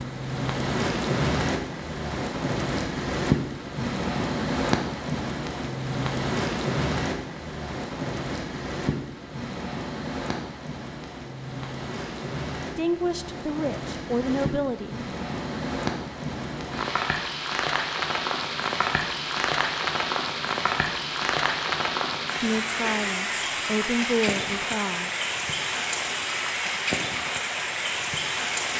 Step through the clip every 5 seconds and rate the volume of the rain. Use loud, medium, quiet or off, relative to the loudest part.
loud, loud, medium, loud, loud, loud.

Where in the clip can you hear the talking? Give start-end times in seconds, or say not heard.
12.8-15.0, 22.4-25.1.